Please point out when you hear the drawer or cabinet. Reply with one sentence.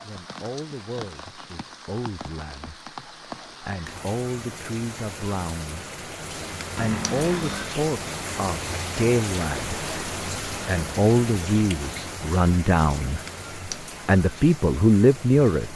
The drawer or cabinet can be heard from 6.8 to 7.8 s.